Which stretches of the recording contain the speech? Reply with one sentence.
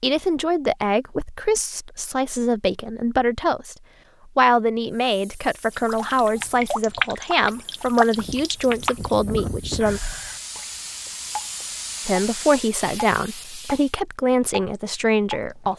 The speech can be heard from 0.0 to 10.0 s and from 12.1 to 15.7 s.